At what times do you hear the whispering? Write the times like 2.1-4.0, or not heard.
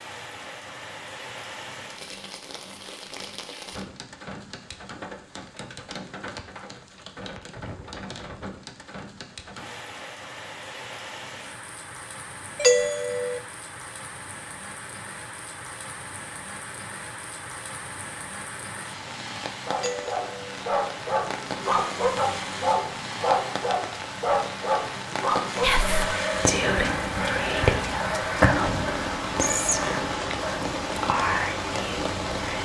25.6-32.5.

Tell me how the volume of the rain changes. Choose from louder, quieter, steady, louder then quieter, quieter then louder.
louder.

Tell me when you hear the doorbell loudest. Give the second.
13 s.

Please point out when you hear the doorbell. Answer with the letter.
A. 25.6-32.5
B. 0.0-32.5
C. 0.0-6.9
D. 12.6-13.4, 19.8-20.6
D.